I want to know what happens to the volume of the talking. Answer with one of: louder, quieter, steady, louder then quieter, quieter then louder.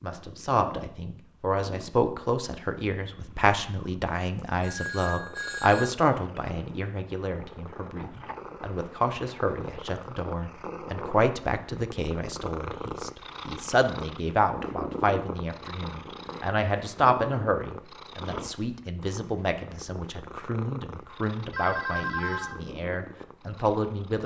steady.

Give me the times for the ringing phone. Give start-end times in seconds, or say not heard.
4.6-6.0, 21.5-22.6.